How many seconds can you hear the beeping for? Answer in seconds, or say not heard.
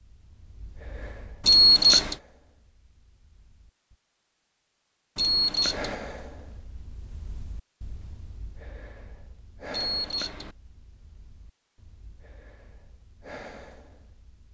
2 s.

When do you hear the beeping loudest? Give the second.
2 s.